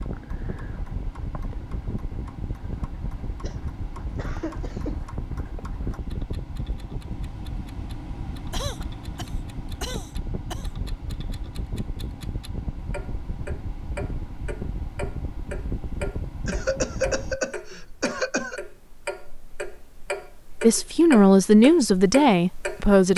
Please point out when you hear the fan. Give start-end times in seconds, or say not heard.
0.0-17.4.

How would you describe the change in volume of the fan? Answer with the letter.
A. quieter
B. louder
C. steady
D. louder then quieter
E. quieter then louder
C.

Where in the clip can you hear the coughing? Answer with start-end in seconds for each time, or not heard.
3.4-5.0, 8.5-10.7, 16.4-18.6.